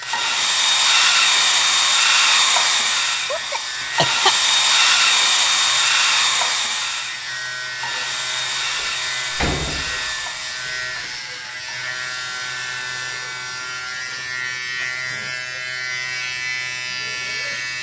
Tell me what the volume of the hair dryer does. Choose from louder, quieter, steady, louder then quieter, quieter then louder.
quieter.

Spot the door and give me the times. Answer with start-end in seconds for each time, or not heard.
8.6-11.2.